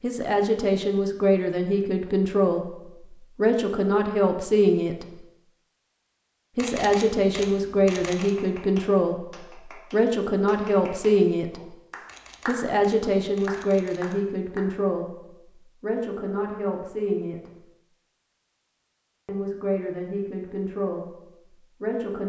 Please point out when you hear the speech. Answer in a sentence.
You can hear the speech from 0.0 to 5.2 s, from 6.5 to 11.8 s, from 12.4 to 17.6 s and from 19.2 to 22.2 s.